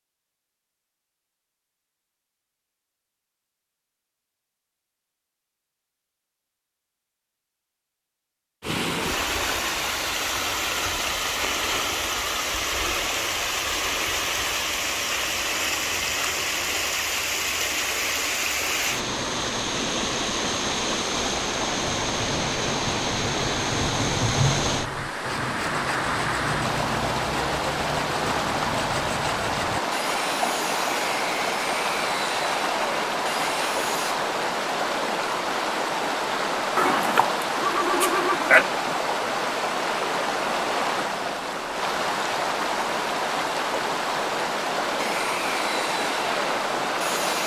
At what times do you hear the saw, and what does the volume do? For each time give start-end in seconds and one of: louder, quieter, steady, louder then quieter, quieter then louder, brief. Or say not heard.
25.2-34.1 steady
45.0-47.4 brief.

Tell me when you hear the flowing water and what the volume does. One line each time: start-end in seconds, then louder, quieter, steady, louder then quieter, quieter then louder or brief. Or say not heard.
8.6-47.4 steady.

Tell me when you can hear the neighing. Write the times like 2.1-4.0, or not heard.
36.8-38.6.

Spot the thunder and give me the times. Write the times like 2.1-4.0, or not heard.
21.9-25.1.